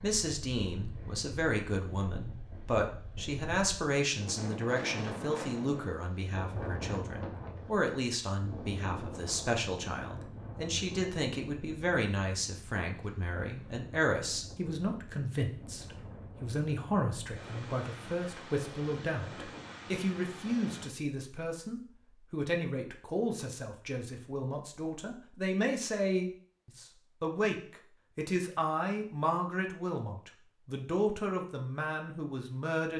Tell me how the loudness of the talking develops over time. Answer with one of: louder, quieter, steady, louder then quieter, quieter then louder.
steady.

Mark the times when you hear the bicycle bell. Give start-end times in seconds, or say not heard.
not heard.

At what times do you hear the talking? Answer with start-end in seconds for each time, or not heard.
0.0-32.9.